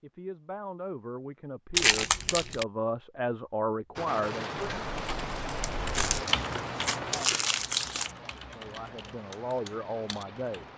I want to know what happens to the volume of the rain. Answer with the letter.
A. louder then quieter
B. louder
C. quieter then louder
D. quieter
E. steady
D.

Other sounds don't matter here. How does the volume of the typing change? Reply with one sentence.
The loudness of the typing goes down.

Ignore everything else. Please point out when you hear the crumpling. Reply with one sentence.
The crumpling can be heard from 1.8 to 2.6 s and from 5.6 to 8.1 s.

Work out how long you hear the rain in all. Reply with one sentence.
The rain can be heard for 7 seconds in total.